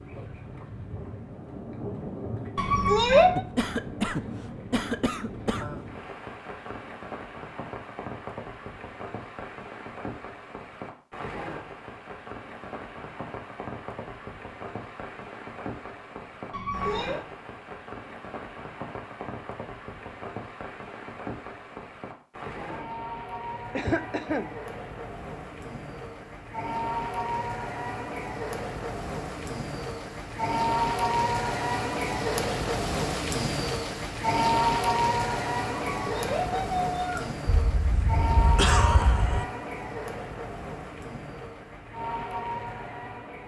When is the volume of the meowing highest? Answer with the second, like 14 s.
3 s.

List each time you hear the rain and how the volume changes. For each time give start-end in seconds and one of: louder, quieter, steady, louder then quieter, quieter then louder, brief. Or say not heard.
0.0-43.4 louder.